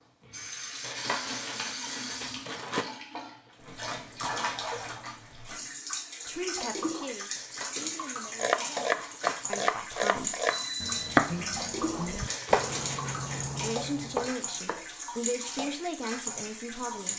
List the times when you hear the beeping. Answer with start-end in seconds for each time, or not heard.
10.4-11.2.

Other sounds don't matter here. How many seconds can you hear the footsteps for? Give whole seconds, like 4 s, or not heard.
not heard.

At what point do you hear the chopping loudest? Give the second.
11 s.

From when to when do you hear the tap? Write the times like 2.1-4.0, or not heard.
0.2-17.1.